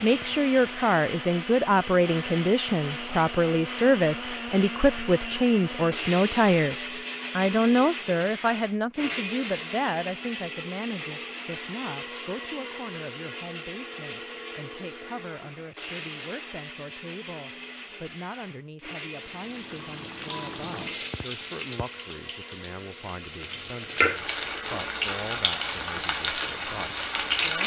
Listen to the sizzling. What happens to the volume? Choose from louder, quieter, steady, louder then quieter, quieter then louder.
louder.